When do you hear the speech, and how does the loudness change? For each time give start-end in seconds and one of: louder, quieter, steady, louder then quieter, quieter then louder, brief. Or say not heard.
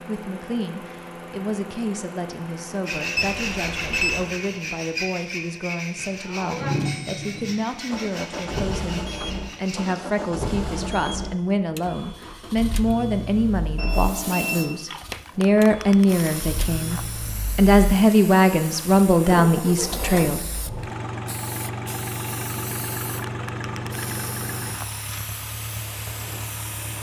0.1-20.4 louder.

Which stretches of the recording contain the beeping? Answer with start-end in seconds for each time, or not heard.
3.1-4.3, 13.8-14.8.